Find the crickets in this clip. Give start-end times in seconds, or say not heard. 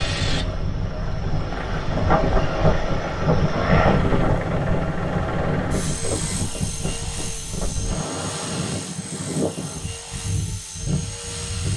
not heard.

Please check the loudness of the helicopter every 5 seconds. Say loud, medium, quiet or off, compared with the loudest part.
loud, medium, medium.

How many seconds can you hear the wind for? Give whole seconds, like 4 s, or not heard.
12 s.